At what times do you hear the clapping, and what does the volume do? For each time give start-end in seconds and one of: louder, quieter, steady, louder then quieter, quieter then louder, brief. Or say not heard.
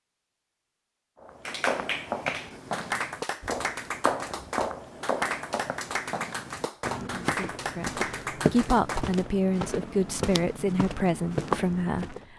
1.4-9.1 steady.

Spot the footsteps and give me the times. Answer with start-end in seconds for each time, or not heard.
1.2-12.2.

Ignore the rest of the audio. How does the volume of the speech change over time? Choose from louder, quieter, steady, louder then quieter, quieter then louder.
louder.